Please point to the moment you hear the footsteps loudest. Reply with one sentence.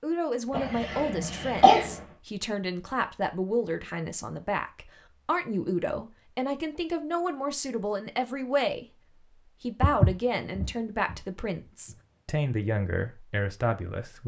The volume of the footsteps peaks at 10 seconds.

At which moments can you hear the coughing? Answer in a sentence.
You can hear the coughing from 0.5 to 1.9 s.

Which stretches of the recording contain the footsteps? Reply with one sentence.
The footsteps can be heard from 9.8 to 12.0 s.